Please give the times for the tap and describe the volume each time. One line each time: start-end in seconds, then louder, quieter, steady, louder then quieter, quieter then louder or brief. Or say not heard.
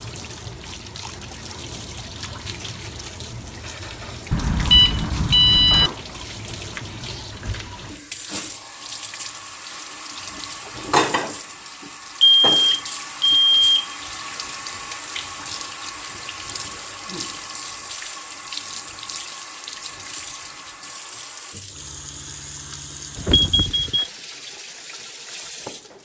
0.0-25.9 louder then quieter.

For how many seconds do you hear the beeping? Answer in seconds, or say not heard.
4 s.